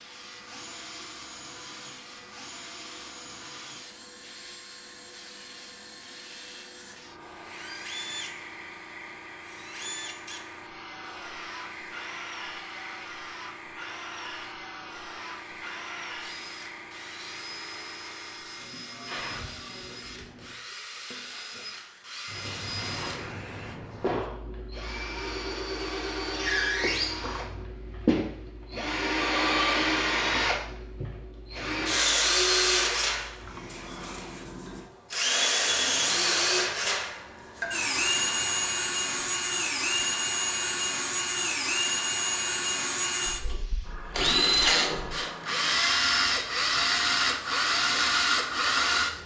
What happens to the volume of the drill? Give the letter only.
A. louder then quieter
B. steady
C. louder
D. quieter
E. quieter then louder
C.